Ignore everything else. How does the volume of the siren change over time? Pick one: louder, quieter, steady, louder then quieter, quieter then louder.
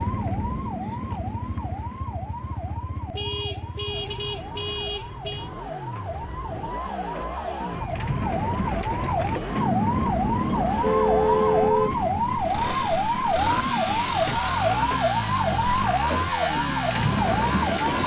louder.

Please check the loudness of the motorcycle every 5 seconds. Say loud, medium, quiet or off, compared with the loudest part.
medium, medium, loud, loud.